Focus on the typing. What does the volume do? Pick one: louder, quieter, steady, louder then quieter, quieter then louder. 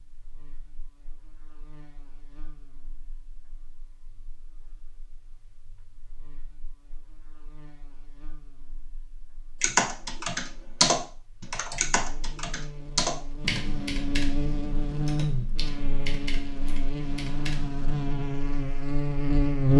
quieter.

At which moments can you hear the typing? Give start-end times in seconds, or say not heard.
9.6-18.2.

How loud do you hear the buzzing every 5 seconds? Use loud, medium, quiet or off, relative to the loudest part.
quiet, quiet, medium, loud.